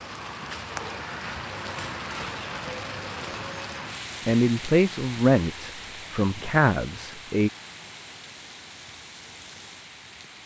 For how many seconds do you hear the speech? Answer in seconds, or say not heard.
3 s.